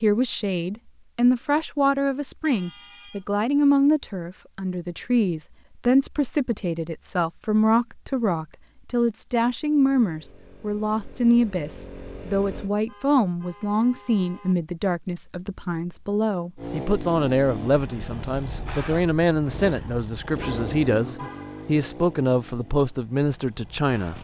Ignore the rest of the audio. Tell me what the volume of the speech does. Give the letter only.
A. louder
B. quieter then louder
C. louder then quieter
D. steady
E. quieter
D.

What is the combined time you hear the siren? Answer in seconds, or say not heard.
not heard.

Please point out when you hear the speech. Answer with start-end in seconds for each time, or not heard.
0.0-24.1.